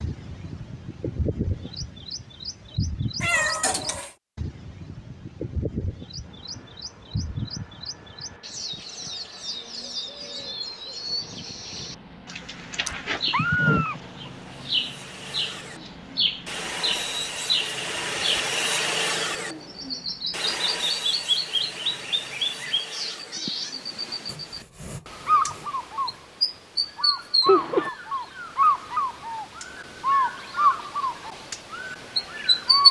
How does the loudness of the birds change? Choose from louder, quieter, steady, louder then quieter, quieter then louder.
louder.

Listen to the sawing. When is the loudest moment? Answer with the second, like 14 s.
19 s.